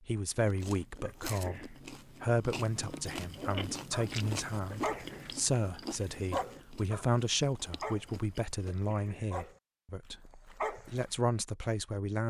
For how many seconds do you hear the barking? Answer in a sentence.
The barking can be heard for 7 seconds in total.